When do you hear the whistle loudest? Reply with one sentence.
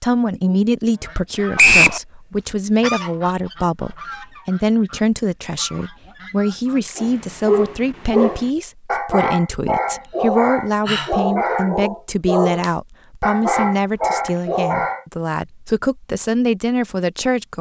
The loudest moment of the whistle is at 2 seconds.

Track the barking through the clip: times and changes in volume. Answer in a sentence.
You can hear the barking from 7.0 to 15.1 s, at a steady volume.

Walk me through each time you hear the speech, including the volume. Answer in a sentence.
You can hear the speech from 0.0 to 17.5 s, at a steady volume.